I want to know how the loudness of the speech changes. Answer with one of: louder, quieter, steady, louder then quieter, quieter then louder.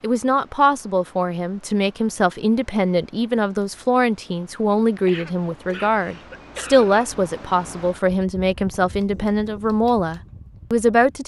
steady.